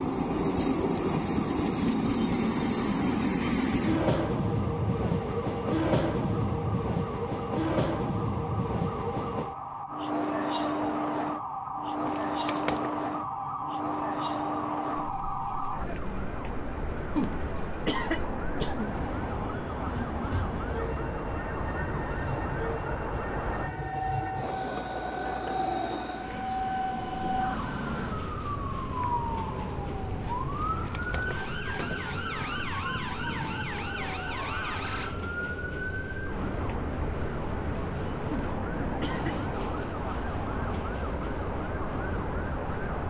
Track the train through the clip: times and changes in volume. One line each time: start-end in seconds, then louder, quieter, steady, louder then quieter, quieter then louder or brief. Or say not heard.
0.0-43.0 quieter.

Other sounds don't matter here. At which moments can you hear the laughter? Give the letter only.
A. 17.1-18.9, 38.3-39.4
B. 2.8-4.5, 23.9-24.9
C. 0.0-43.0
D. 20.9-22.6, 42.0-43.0
A.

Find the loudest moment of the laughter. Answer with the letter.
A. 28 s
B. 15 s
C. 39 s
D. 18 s
D.